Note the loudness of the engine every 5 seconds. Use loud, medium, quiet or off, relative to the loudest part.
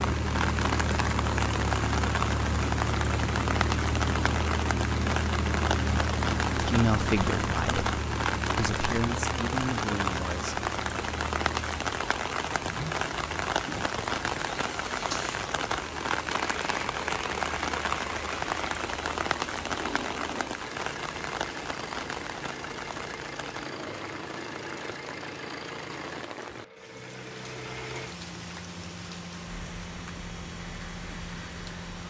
loud, loud, medium, medium, medium, medium, medium.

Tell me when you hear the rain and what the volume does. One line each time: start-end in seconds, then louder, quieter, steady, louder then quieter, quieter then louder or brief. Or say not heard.
0.0-32.0 quieter.